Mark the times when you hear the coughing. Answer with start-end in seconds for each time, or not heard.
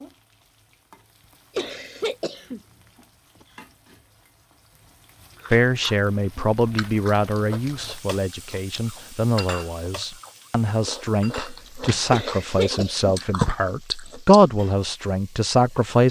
1.6-2.6, 12.1-13.2.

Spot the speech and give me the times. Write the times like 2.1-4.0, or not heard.
5.5-16.0.